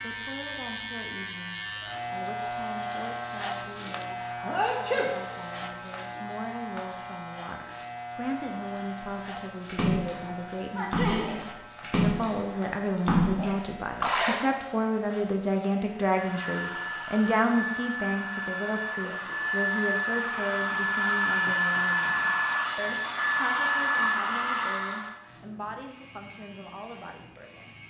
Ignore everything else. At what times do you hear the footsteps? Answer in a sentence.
You can't hear the footsteps here.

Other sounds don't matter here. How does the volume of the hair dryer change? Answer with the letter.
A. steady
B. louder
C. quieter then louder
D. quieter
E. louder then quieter
B.